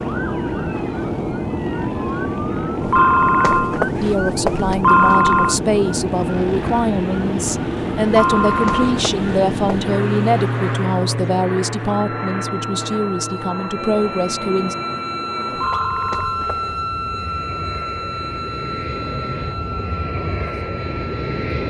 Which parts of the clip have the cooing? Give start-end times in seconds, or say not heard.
not heard.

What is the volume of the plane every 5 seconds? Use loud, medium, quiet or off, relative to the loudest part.
loud, loud, loud, medium, loud.